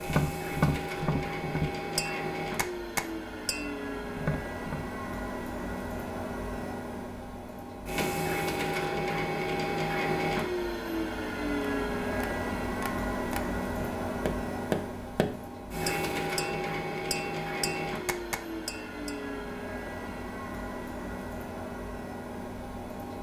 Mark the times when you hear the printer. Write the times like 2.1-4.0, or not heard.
0.0-23.1.